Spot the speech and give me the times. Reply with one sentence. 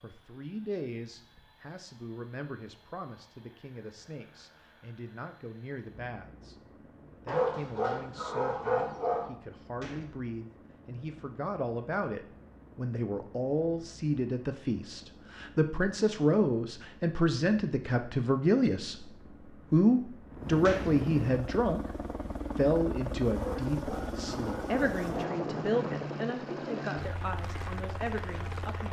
You can hear the speech from 0.0 to 6.5 s, from 7.2 to 19.1 s, from 19.7 to 21.8 s and from 22.6 to 28.8 s.